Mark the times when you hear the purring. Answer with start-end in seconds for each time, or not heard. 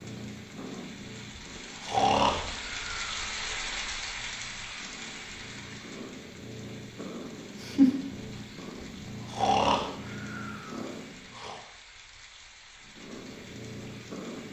0.0-11.4, 12.8-14.4.